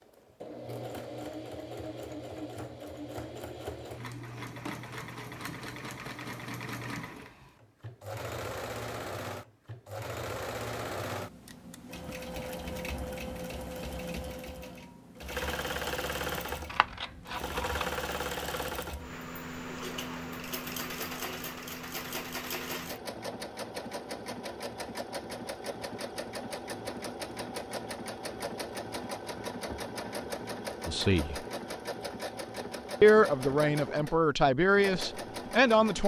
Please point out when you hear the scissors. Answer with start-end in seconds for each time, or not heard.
16.6-17.9.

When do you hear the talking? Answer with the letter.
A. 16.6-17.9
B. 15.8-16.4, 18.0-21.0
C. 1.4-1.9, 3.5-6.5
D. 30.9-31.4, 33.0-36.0
D.